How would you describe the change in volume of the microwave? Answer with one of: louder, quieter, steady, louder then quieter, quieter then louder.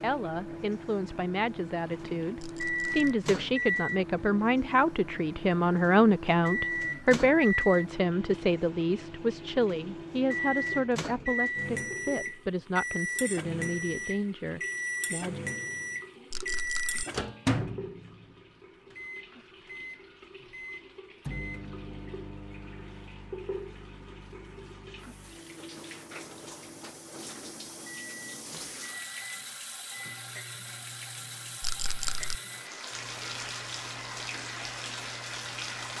quieter.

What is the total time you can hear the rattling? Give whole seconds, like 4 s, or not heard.
2 s.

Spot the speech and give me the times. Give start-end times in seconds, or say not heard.
0.0-15.4.